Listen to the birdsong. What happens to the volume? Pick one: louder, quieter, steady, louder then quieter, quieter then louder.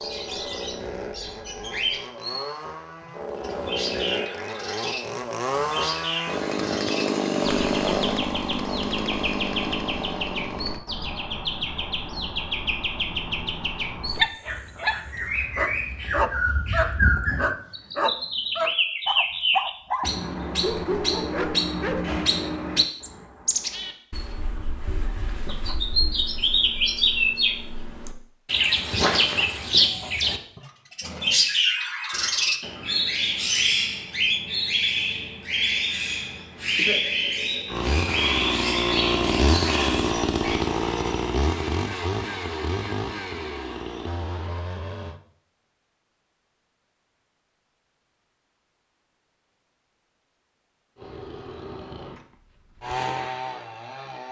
louder.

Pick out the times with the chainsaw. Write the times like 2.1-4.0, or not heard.
0.0-10.8, 37.6-45.2, 51.0-54.2.